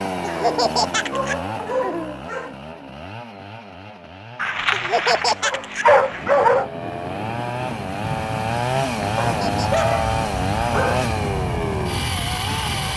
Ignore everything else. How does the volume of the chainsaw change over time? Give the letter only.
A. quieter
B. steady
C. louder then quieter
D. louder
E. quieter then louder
E.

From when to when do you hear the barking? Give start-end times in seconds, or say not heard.
0.2-2.5, 4.3-6.7, 9.2-11.1.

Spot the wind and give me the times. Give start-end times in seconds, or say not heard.
6.1-12.9.